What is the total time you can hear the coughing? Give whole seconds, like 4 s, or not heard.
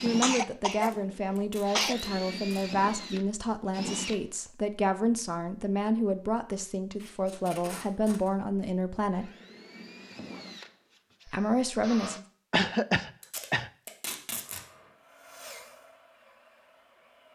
3 s.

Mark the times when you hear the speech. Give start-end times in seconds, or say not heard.
0.0-9.3, 11.2-12.2.